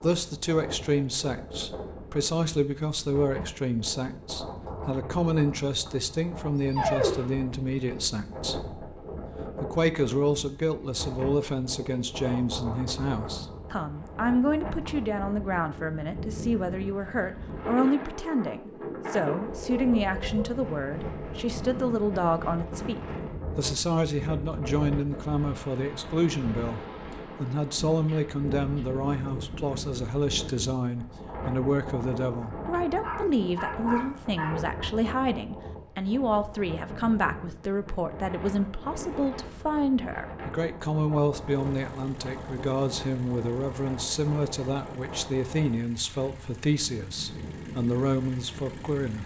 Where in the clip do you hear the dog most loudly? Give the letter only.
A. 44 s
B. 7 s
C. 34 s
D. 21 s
B.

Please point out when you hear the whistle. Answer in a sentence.
You can't hear the whistle here.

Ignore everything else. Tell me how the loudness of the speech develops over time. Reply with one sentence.
The loudness of the speech stays about the same.